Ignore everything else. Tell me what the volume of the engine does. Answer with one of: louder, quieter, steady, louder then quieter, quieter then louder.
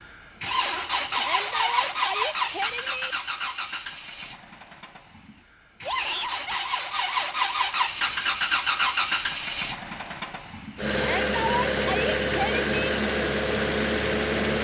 quieter then louder.